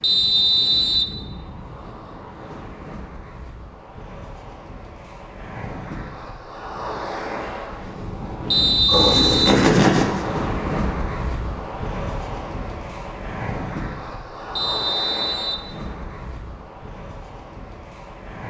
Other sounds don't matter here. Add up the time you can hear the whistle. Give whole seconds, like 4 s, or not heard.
3 s.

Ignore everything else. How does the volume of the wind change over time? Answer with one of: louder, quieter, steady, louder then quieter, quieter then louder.
louder then quieter.